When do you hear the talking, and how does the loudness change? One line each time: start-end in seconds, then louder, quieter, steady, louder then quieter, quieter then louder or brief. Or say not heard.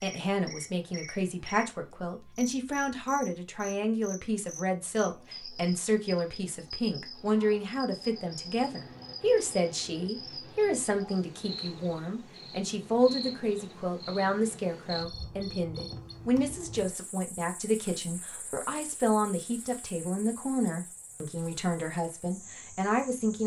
0.0-23.4 steady.